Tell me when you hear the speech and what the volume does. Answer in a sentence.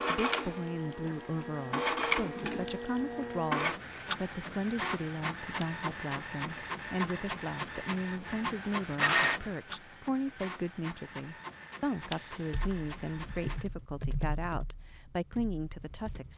You can hear the speech from 0.1 to 16.3 s, at a steady volume.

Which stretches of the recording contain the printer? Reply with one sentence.
The printer can be heard from 0.0 to 13.7 s.